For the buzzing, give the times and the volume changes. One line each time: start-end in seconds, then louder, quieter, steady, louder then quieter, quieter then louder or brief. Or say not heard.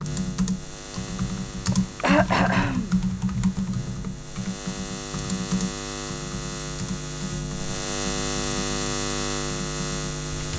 0.0-10.5 louder.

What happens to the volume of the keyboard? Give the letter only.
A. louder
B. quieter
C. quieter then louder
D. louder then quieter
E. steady
B.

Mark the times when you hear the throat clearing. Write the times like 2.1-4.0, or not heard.
1.7-3.0.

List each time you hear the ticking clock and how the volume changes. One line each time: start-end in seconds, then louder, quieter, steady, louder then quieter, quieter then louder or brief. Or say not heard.
not heard.